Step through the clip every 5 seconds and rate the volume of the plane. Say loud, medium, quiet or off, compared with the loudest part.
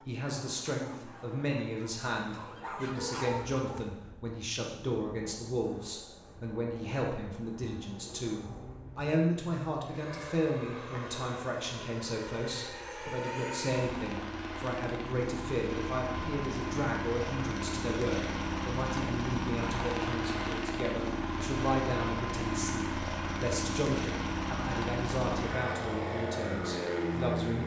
quiet, quiet, medium, loud, loud, loud.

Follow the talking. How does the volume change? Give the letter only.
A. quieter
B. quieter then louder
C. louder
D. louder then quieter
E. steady
E.